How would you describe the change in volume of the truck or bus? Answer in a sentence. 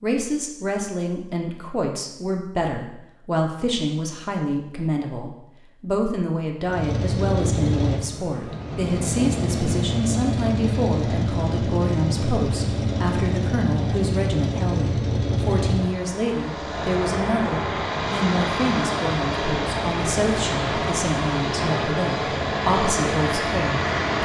The volume of the truck or bus stays about the same.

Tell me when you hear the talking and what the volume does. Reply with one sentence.
You can hear the talking from 0.0 to 24.2 s, at a steady volume.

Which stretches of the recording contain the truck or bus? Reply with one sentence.
The truck or bus can be heard from 6.7 to 24.2 s.